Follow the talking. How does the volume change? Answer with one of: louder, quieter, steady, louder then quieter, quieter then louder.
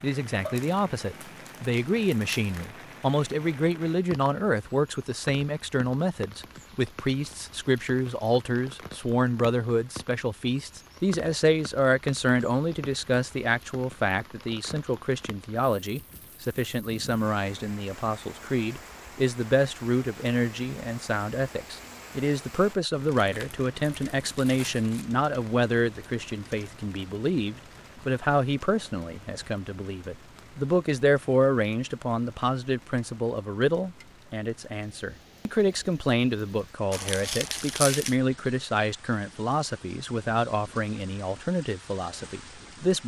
steady.